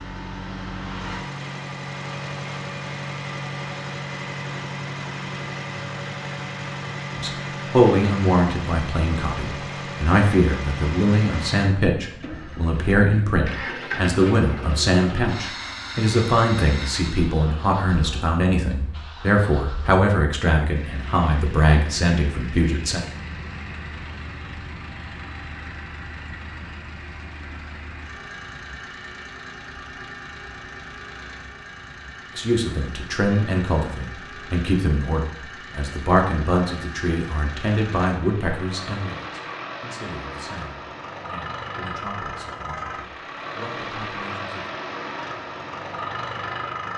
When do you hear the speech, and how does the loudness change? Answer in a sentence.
The speech can be heard from 7.2 to 23.0 s, at a steady volume; and from 32.4 to 44.8 s, getting quieter.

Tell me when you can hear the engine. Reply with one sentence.
You can hear the engine from 0.0 to 46.9 s.